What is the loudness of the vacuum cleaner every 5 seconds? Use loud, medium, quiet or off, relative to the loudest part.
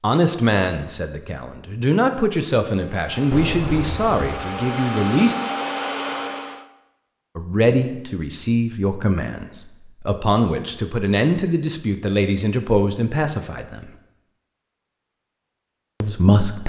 medium, loud, off, off.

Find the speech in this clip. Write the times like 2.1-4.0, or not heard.
0.0-5.3, 7.3-13.9, 16.0-16.6.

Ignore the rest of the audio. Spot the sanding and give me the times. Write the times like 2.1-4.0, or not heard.
not heard.